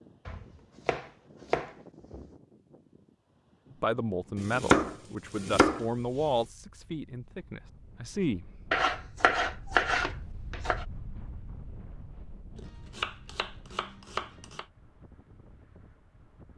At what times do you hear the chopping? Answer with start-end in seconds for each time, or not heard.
0.2-2.2, 4.3-6.2, 8.7-10.8, 12.6-14.7.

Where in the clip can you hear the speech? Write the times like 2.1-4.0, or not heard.
3.8-8.6.